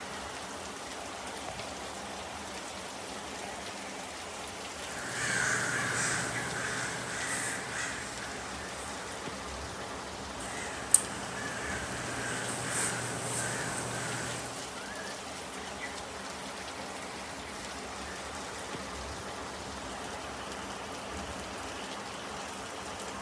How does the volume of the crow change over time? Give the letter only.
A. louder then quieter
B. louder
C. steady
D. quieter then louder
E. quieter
D.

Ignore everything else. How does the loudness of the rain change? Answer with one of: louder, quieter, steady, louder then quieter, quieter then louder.
steady.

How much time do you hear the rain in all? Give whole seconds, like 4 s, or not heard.
23 s.